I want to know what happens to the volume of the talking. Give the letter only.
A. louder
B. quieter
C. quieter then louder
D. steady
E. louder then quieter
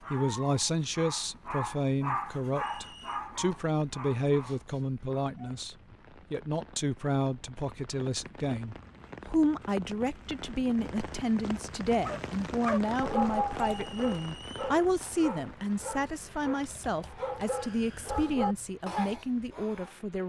D.